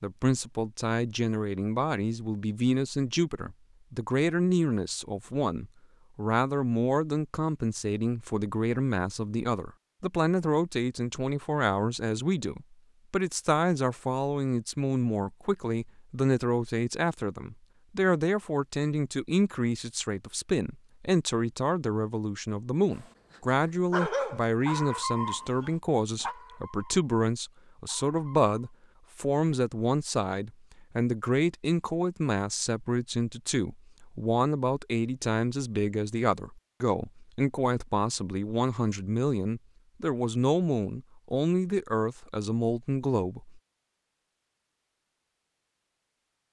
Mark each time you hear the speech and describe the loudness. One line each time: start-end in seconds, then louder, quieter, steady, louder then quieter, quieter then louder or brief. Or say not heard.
0.0-43.6 steady.